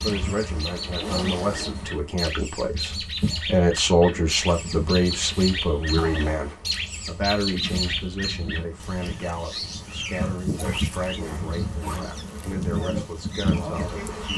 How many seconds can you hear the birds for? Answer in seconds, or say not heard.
14 s.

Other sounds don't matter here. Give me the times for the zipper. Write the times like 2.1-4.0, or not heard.
0.9-1.8, 6.0-6.5, 10.5-12.6.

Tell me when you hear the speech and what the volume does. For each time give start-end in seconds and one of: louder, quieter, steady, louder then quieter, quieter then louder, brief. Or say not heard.
0.0-14.3 louder then quieter.